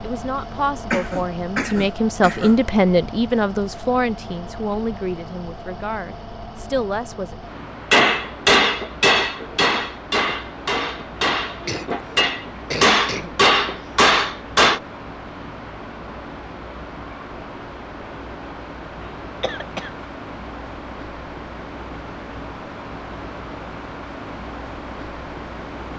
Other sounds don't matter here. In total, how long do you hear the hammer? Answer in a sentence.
The hammer can be heard for 7 seconds in total.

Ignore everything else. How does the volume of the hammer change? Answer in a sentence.
The volume of the hammer goes down, then up.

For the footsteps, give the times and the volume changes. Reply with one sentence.
The footsteps can't be heard in this clip.